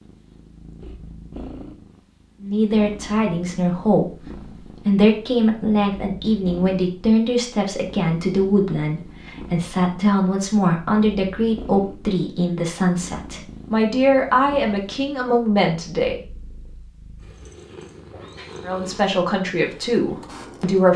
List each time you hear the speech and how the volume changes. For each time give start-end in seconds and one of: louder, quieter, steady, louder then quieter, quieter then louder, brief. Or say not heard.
2.4-16.2 steady
18.6-20.9 brief.